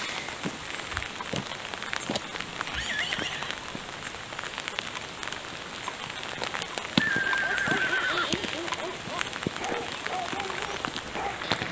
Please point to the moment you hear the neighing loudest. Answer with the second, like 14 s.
7 s.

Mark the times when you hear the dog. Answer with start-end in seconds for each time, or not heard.
7.2-11.4.